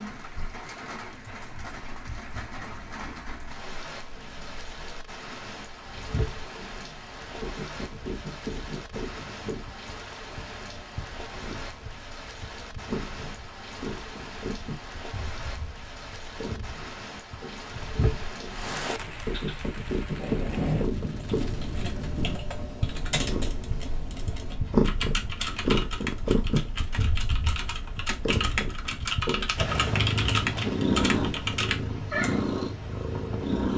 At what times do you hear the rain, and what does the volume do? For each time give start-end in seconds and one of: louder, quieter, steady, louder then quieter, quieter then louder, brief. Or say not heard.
0.0-22.4 louder.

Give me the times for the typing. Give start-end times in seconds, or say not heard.
21.2-32.4.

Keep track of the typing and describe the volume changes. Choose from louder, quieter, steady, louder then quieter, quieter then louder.
louder.